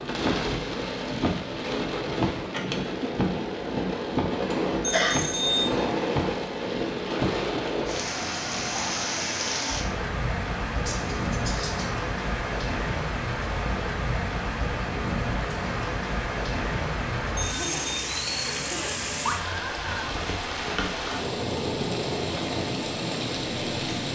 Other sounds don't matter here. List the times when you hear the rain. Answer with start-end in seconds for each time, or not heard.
0.0-24.1.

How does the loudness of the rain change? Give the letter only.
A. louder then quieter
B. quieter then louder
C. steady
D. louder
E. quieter
C.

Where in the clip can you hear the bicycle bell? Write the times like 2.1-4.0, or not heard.
4.8-5.7, 17.4-18.0.